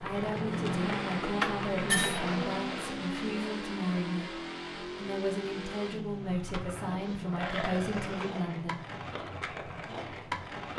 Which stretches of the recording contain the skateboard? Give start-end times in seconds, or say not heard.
0.0-3.0, 6.2-10.7.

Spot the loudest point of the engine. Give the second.
1 s.